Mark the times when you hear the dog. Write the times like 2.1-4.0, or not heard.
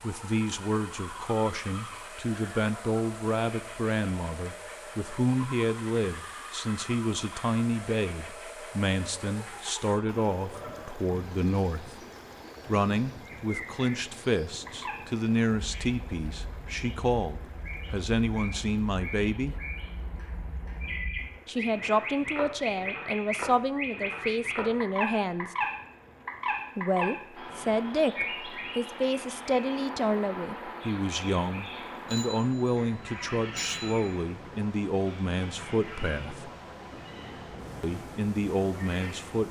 not heard.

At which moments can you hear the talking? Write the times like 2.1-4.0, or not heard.
0.0-11.9, 12.7-19.6, 21.4-25.6, 26.8-36.5, 37.8-39.4.